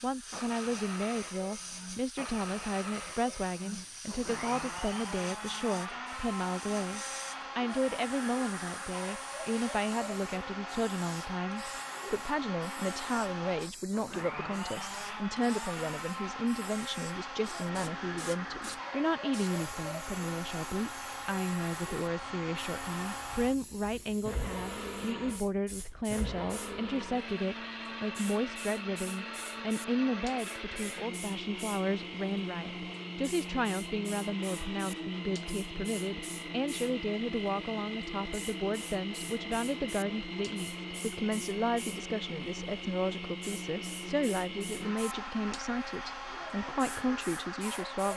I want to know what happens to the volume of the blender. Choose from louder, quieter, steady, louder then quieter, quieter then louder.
steady.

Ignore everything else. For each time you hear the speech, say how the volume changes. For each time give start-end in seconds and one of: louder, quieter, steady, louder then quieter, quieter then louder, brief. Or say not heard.
0.0-48.1 steady.